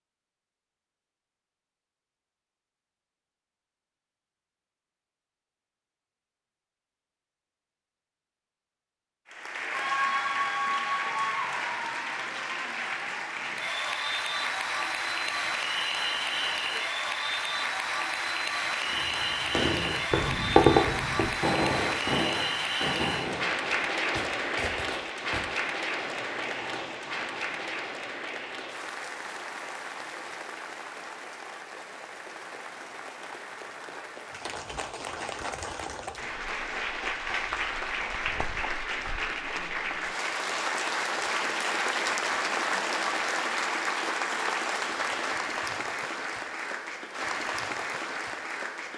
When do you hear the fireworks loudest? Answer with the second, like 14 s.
21 s.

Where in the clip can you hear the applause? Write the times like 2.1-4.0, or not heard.
9.3-48.9.